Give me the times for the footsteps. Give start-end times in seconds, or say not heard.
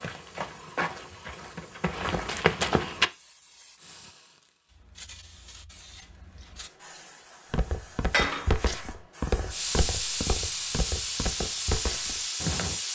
0.0-3.1, 7.5-12.8.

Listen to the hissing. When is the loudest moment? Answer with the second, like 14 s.
10 s.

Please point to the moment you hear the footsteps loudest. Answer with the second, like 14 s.
3 s.